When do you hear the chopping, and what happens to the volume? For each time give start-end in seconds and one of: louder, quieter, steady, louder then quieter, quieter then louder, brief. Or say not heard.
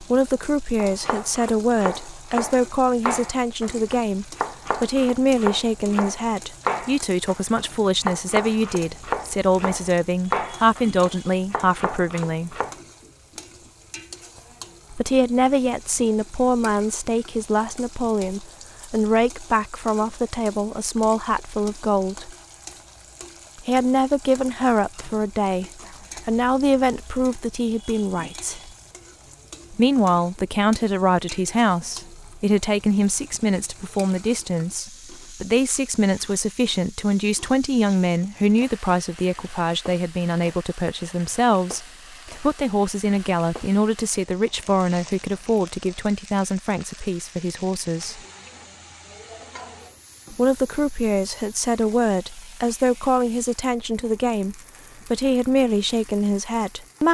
0.8-12.8 steady.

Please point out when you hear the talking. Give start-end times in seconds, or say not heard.
0.0-12.6, 14.9-22.4, 23.6-28.7, 29.7-48.2, 50.3-57.1.